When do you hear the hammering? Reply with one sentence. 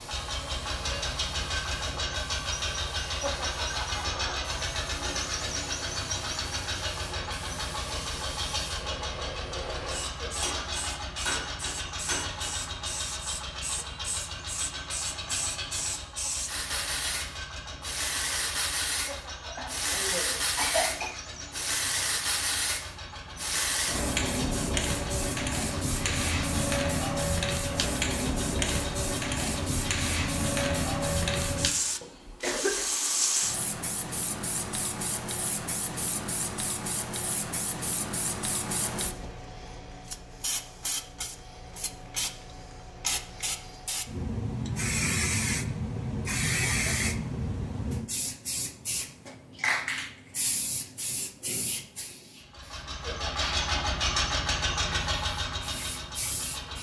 The hammering can be heard from 9.8 to 12.6 s.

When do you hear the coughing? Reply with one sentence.
You can hear the coughing from 19.4 to 21.2 s and from 32.0 to 32.9 s.